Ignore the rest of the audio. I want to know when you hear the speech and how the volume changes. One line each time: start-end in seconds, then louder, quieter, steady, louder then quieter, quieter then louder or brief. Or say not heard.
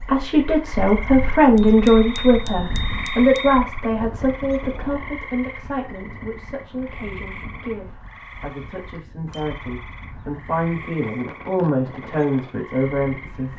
0.0-13.5 quieter then louder.